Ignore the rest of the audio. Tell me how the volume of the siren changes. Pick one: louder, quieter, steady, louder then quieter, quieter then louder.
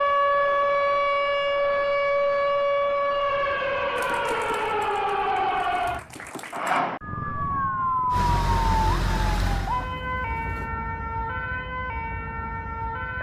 quieter.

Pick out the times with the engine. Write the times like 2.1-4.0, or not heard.
8.1-10.7.